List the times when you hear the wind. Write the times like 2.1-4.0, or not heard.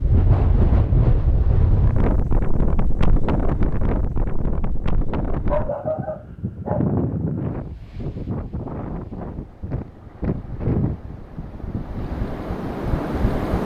0.0-13.6.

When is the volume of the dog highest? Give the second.
6 s.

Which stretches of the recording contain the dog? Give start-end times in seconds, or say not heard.
5.5-6.9.